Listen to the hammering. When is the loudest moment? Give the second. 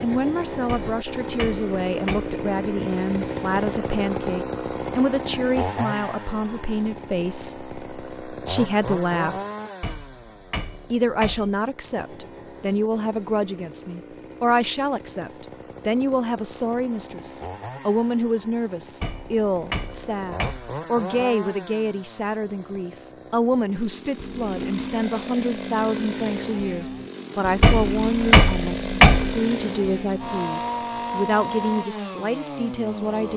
29 s.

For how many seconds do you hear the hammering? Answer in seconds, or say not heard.
7 s.